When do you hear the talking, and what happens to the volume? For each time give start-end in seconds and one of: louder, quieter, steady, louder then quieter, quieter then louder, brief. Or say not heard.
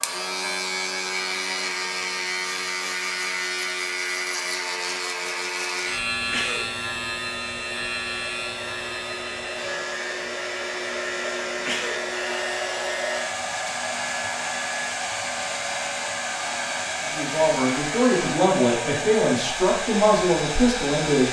17.0-21.2 steady.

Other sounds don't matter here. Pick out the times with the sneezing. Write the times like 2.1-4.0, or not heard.
6.2-6.7, 11.2-12.1.